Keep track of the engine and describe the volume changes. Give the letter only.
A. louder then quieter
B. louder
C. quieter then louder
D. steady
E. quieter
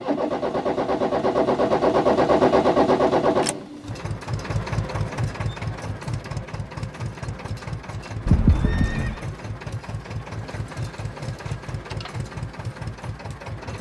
E.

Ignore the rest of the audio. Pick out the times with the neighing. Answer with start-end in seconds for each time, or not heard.
8.2-9.2.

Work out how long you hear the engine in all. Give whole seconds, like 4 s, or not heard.
14 s.